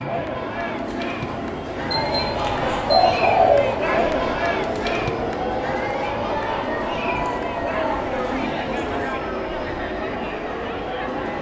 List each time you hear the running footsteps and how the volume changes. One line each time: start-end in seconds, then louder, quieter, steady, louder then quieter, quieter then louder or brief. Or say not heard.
not heard.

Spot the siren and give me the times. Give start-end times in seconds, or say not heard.
1.9-11.3.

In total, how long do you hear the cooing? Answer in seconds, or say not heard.
4 s.